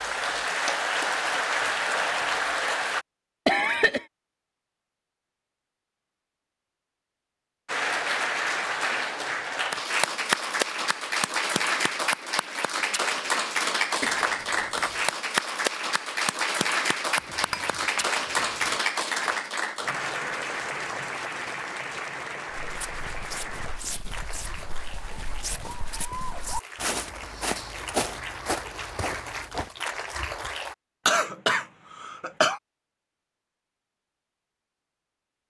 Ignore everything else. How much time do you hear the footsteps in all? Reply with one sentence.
You can hear the footsteps for 7 seconds altogether.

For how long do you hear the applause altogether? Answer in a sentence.
You can hear the applause for 26 seconds altogether.